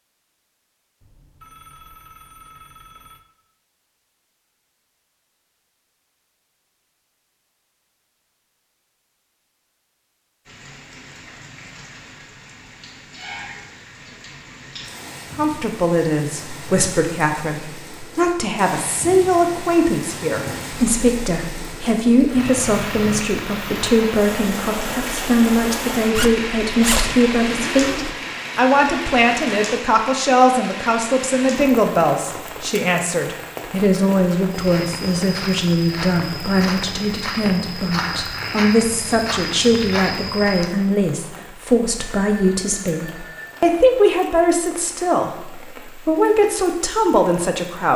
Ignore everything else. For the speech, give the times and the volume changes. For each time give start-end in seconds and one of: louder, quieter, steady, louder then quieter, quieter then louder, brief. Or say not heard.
15.3-47.9 steady.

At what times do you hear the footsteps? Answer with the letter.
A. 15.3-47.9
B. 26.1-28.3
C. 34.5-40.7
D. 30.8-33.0
C.